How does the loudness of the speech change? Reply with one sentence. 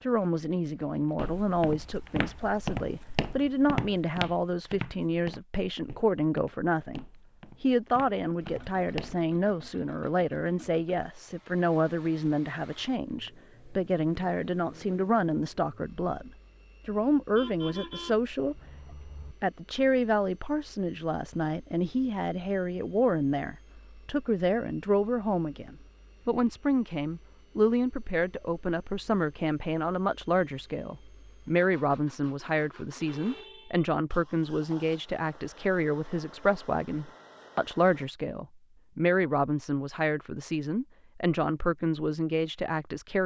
The volume of the speech stays about the same.